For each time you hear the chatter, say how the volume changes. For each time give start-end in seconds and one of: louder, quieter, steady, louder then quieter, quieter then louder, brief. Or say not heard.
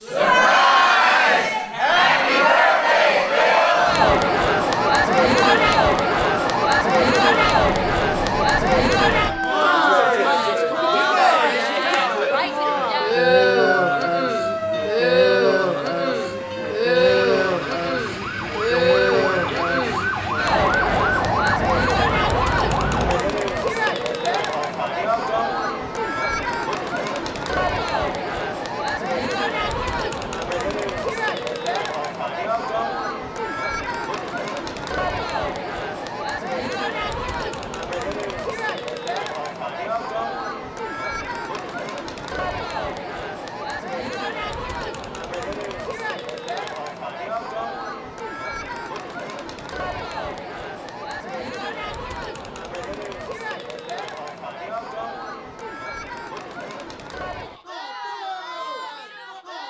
0.1-59.6 quieter.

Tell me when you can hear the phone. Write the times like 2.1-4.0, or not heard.
not heard.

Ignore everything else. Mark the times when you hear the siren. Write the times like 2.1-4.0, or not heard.
1.9-23.2.